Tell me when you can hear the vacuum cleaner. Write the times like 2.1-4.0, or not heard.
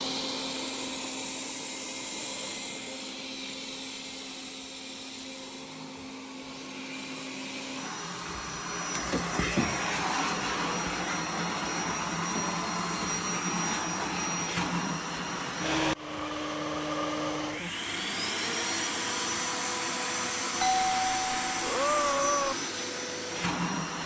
0.0-24.0.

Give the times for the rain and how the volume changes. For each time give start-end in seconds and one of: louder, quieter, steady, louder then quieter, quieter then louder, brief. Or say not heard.
not heard.